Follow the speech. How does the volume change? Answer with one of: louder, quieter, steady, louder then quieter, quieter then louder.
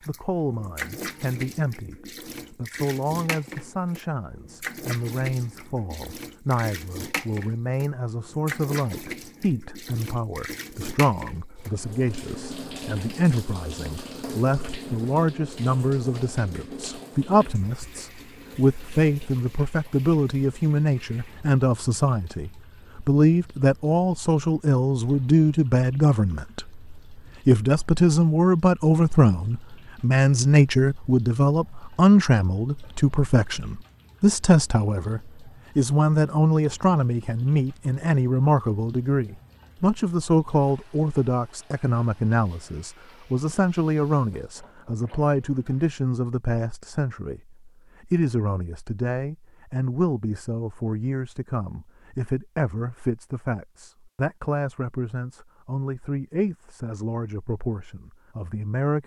louder then quieter.